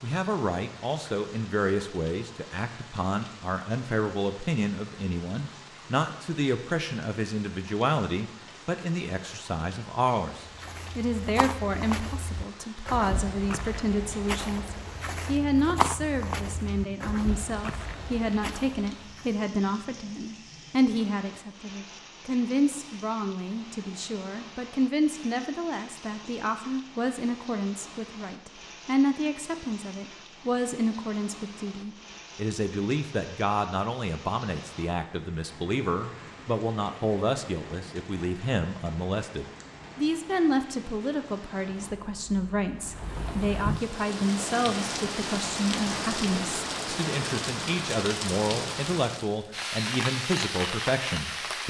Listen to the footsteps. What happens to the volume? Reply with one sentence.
The loudness of the footsteps goes up, then down.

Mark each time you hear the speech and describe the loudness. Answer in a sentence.
You can hear the speech from 0.0 to 51.6 s, at a steady volume.